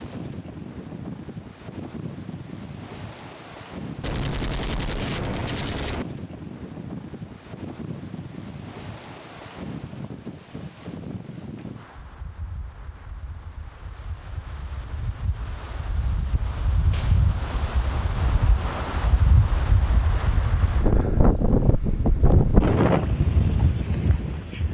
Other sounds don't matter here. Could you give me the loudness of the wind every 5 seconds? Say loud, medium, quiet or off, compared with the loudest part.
quiet, quiet, quiet, medium, loud.